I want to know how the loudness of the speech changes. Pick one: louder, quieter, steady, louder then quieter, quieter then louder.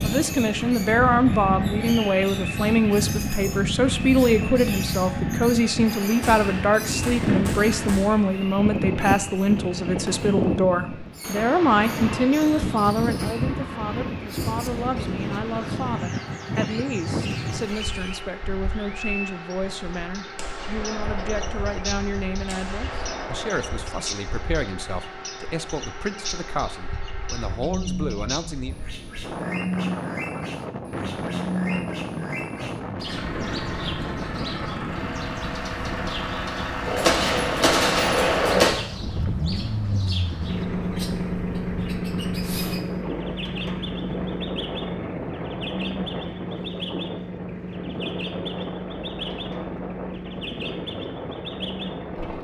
quieter.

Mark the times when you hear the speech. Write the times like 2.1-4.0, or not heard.
0.0-28.8.